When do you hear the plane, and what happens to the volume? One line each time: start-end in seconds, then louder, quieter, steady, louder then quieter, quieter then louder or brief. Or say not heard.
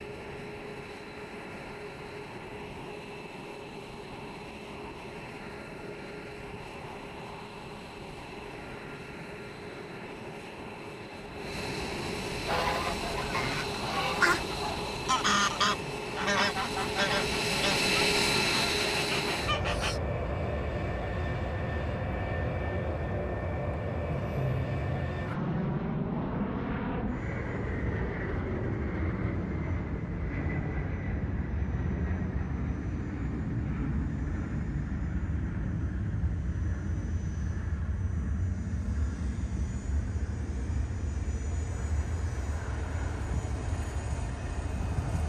0.0-45.2 louder then quieter.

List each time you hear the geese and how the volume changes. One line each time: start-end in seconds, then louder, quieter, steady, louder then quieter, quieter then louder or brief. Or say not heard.
12.4-20.0 louder then quieter.